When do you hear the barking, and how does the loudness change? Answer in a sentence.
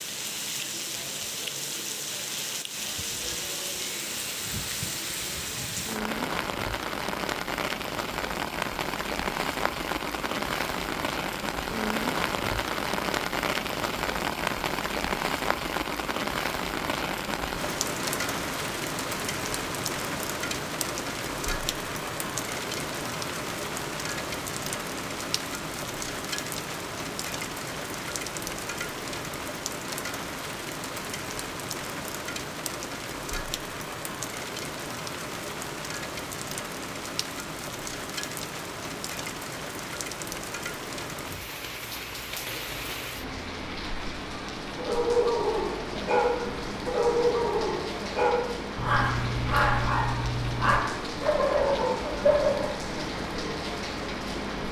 The barking can be heard from 44.8 to 52.8 s, at a steady volume.